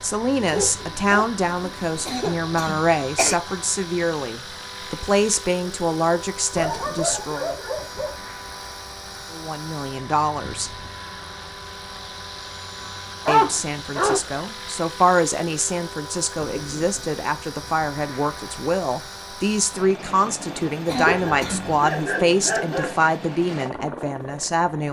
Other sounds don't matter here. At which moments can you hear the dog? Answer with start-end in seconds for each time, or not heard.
0.4-2.1, 6.5-8.2, 13.2-14.4, 21.1-22.9.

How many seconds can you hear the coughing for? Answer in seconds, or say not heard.
2 s.